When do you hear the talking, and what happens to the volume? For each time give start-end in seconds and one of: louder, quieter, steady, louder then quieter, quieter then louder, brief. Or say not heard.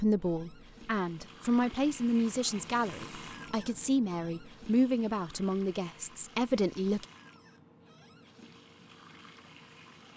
0.0-7.0 steady.